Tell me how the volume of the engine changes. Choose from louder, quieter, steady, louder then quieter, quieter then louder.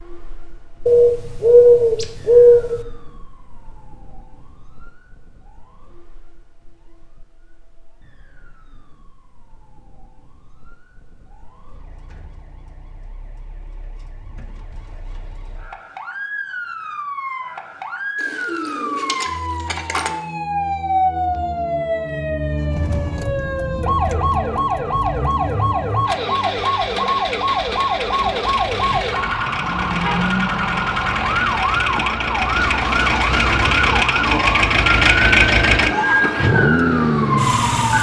louder.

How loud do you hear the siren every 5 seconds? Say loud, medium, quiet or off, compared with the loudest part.
quiet, quiet, quiet, medium, loud, loud, loud, loud.